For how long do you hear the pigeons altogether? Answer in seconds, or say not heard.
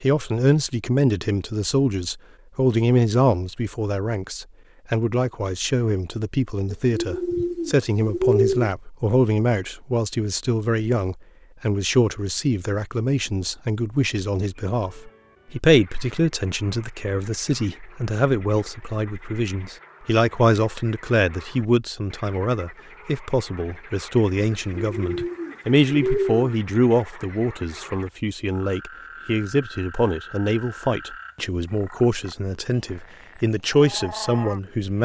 4 s.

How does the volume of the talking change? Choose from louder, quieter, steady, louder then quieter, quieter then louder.
steady.